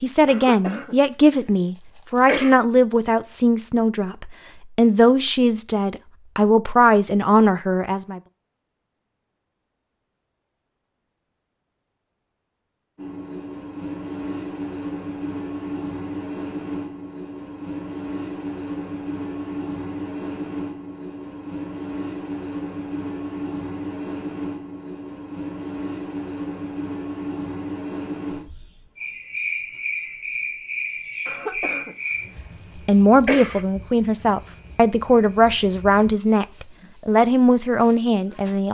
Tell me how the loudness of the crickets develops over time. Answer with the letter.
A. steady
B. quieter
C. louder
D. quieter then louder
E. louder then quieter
A.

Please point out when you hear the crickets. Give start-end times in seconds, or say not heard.
12.9-38.7.